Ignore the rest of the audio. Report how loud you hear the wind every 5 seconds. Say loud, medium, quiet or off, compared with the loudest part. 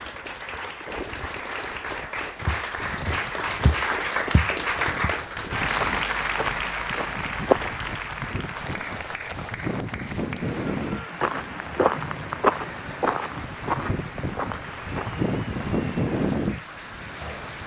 quiet, medium, medium, loud.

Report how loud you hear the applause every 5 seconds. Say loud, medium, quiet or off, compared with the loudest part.
loud, loud, medium, medium.